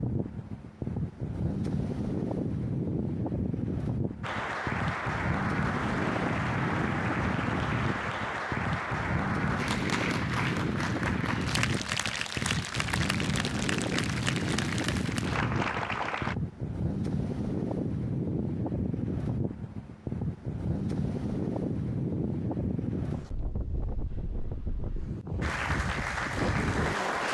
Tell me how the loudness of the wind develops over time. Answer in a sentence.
The volume of the wind stays about the same.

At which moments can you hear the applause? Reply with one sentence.
You can hear the applause from 4.2 to 16.4 s and from 25.4 to 27.3 s.